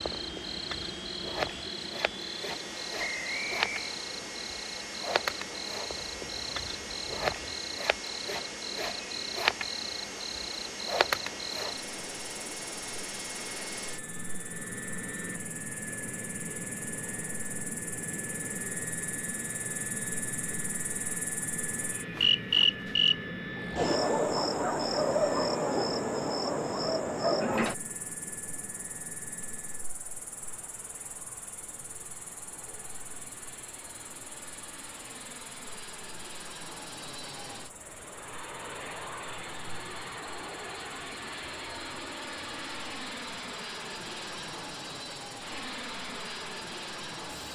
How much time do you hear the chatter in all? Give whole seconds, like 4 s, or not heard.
not heard.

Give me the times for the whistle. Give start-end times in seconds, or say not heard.
3.0-4.0.